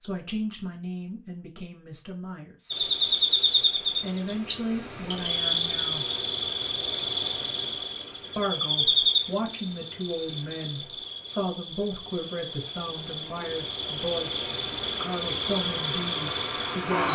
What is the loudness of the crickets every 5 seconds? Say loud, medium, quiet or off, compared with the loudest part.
loud, loud, medium, loud.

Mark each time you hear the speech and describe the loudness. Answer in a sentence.
You can hear the speech briefly from 0.0 to 2.9 s; briefly from 4.0 to 6.0 s; and from 8.3 to 17.0 s, at a steady volume.